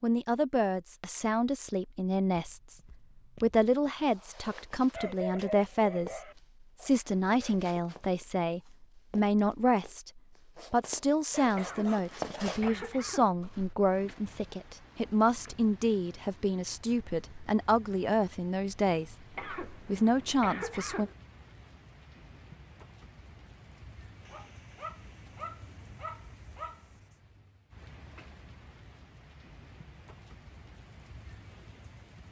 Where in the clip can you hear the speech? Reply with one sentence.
The speech can be heard from 0.0 to 2.8 s, from 3.4 to 6.2 s and from 6.8 to 21.1 s.